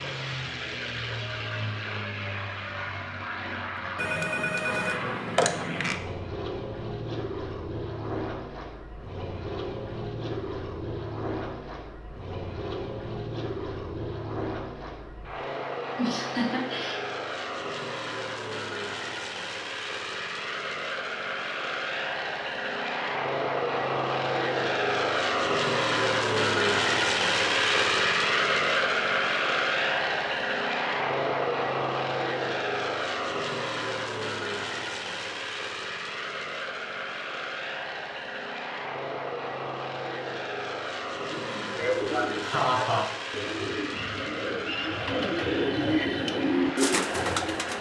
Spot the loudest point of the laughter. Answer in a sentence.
The loudest moment of the laughter is at 43 seconds.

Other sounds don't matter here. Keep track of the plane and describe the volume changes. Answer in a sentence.
The loudness of the plane goes up, then down.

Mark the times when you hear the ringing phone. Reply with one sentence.
You can hear the ringing phone from 4.0 to 6.0 s.